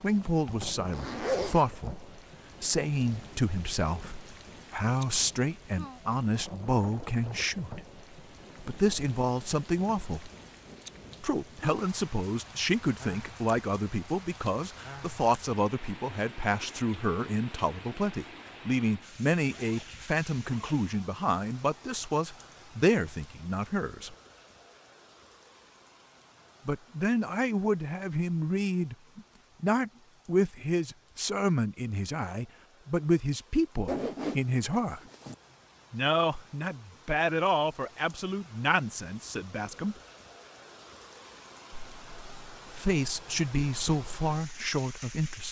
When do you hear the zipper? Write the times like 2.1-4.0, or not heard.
0.5-1.6, 19.4-20.8, 33.9-35.4.